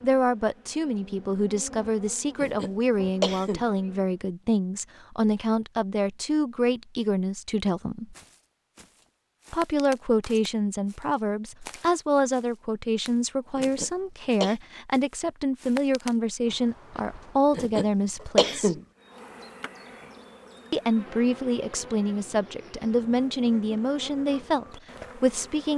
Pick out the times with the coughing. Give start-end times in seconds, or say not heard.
2.4-3.6, 13.6-14.6, 17.5-18.8.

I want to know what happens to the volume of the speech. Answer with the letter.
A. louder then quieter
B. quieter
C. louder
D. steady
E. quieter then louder
D.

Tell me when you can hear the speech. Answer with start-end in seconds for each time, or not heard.
0.0-8.2, 9.5-18.8, 20.7-25.7.